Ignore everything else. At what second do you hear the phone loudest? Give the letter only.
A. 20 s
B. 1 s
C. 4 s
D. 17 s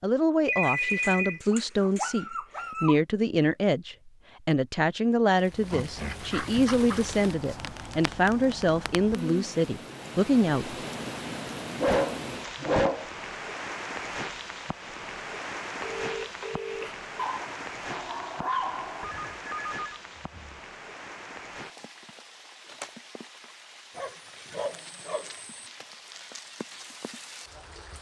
B.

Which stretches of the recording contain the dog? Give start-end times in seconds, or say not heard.
0.6-3.0, 5.6-7.2, 11.8-13.1, 17.1-19.1, 23.9-25.6.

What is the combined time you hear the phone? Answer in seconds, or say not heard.
4 s.